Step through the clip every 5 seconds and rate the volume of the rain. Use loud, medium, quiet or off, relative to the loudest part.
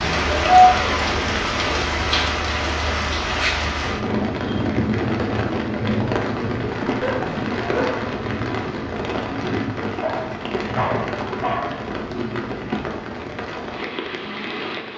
loud, loud, medium.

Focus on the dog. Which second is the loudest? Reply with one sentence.
The volume of the dog peaks at 1 second.